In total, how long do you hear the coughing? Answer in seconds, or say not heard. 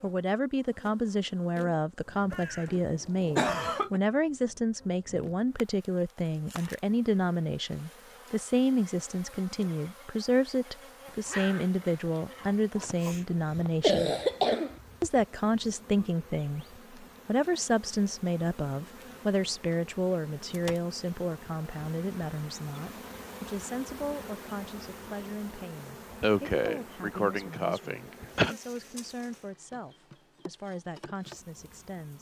6 s.